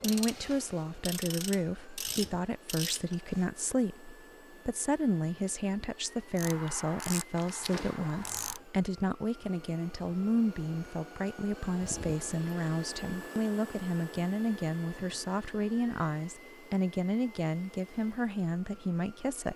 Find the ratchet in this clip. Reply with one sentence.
The ratchet can be heard from 0.0 to 3.5 s and from 6.3 to 8.6 s.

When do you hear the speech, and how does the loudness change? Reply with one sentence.
The speech can be heard from 0.0 to 19.5 s, at a steady volume.